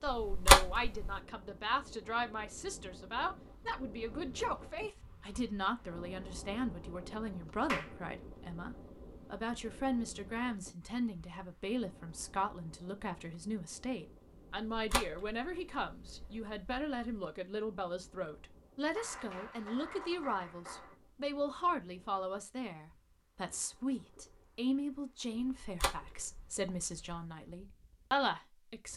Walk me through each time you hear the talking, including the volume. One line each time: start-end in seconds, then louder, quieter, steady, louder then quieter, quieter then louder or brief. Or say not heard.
0.0-28.9 steady.